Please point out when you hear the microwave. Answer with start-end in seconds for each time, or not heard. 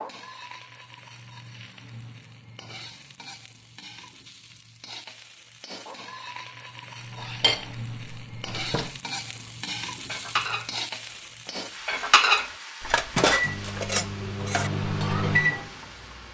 12.9-16.2.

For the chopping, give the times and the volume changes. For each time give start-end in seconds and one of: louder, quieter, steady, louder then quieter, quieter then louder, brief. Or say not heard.
not heard.